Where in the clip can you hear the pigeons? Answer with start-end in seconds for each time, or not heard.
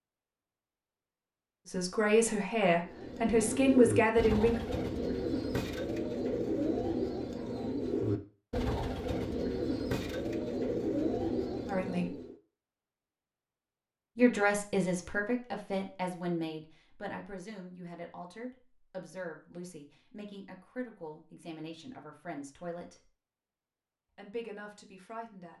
2.9-12.3.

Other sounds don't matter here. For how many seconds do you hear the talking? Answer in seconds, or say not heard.
14 s.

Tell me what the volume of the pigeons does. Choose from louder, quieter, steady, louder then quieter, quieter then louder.
steady.